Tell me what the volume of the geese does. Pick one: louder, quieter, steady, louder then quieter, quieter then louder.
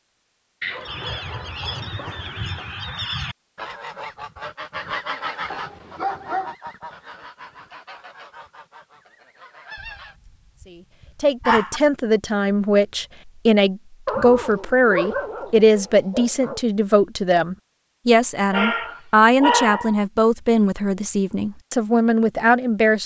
quieter.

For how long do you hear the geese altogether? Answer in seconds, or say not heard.
9 s.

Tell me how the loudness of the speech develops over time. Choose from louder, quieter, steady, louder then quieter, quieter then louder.
steady.